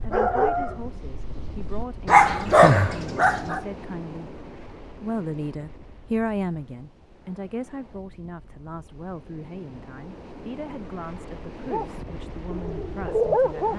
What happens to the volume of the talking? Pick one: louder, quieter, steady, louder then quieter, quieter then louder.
louder then quieter.